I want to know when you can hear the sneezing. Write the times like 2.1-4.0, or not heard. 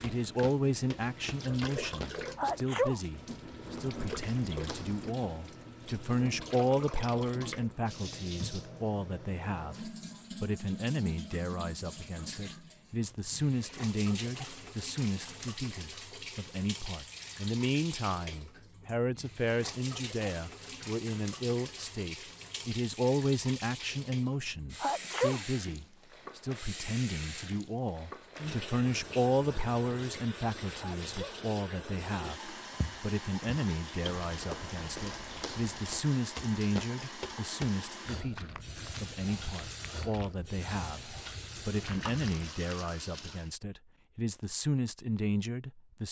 2.4-3.0, 24.8-25.4, 30.8-31.4.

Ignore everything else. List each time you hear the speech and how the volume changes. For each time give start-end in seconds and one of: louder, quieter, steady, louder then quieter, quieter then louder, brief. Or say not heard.
0.0-46.0 steady.